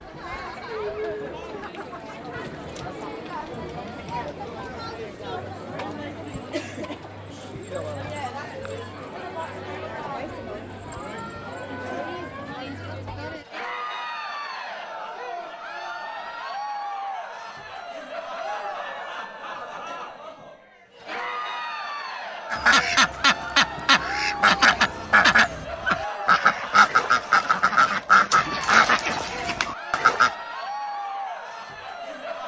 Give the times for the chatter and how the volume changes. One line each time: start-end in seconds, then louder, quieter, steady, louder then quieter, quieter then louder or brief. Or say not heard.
0.0-32.4 steady.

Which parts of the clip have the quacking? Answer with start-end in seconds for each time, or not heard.
22.5-30.3.